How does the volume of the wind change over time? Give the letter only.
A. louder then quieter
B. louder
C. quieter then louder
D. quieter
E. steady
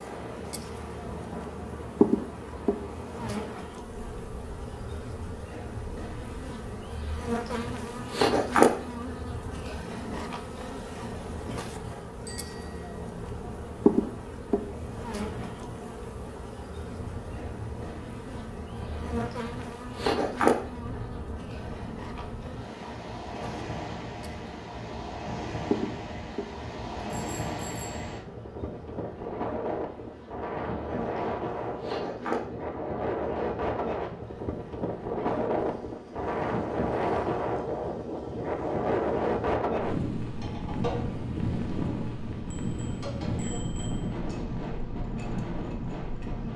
B.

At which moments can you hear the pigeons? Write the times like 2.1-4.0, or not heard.
not heard.